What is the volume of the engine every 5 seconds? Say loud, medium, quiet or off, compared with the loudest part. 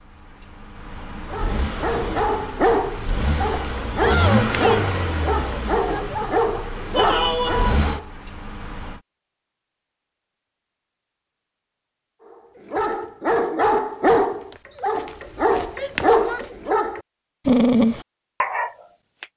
loud, loud, off, off.